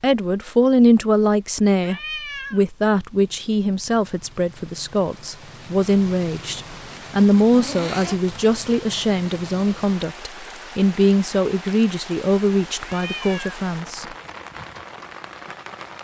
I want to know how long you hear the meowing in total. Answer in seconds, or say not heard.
2 s.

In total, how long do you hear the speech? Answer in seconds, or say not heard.
14 s.